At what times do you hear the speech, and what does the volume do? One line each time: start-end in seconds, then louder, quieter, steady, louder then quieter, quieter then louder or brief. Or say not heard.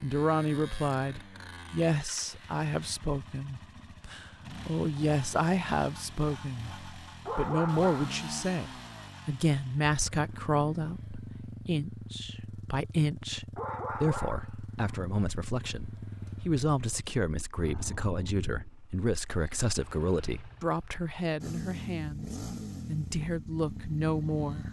0.0-24.6 steady.